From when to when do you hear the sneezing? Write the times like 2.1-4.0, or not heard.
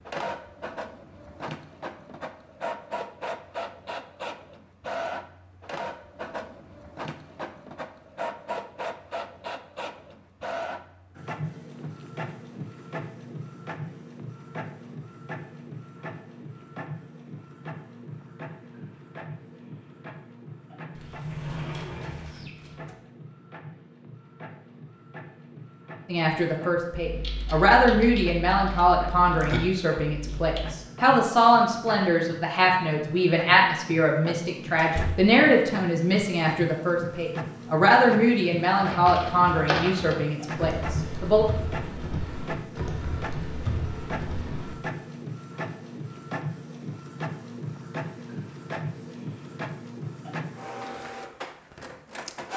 not heard.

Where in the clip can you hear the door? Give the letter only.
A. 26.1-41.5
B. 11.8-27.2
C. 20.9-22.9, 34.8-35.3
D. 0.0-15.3
C.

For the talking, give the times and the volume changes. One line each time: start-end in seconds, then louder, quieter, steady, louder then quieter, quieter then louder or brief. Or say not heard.
26.1-41.5 steady.